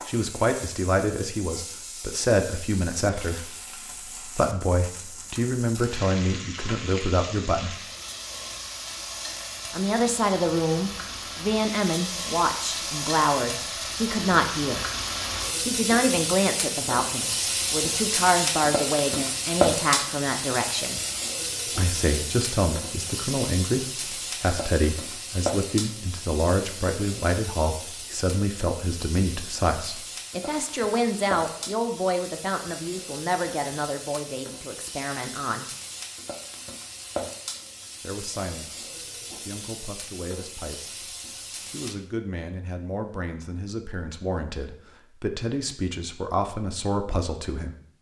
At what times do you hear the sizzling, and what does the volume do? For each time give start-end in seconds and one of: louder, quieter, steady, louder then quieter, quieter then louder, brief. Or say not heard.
0.0-42.0 louder then quieter.